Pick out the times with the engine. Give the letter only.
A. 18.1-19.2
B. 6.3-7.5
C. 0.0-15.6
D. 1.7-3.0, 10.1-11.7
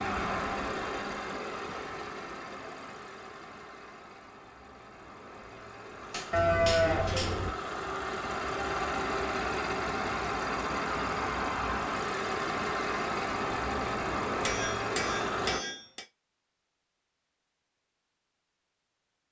C.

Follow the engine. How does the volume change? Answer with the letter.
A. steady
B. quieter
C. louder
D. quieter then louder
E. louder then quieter
D.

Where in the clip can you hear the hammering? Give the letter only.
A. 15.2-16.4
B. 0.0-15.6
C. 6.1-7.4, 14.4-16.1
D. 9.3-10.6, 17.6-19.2
C.